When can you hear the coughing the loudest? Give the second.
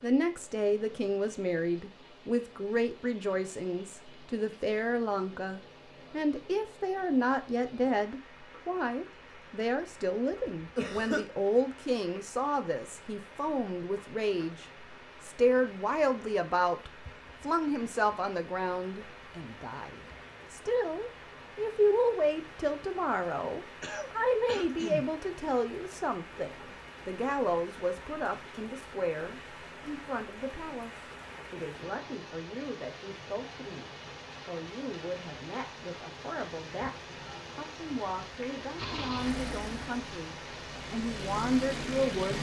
11 s.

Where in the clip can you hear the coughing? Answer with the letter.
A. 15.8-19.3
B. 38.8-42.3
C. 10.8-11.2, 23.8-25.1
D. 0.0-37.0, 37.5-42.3
C.